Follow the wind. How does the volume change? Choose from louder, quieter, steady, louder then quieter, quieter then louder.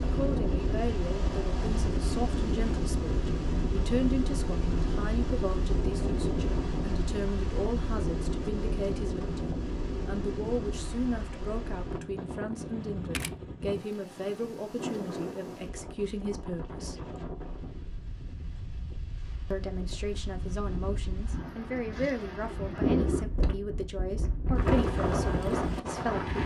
quieter then louder.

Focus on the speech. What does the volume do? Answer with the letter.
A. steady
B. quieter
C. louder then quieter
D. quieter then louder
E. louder
A.